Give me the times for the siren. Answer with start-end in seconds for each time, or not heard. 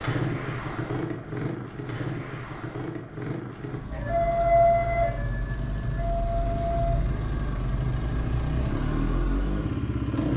3.9-7.1.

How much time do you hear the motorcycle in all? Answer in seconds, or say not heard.
10 s.